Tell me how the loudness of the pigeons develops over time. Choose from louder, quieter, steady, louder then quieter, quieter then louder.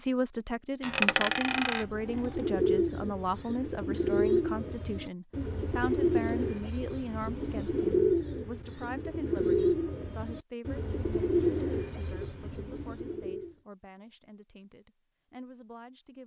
steady.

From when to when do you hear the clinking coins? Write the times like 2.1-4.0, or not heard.
0.8-2.4.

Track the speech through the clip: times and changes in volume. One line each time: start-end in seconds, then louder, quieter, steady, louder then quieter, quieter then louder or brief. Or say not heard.
0.0-16.2 quieter.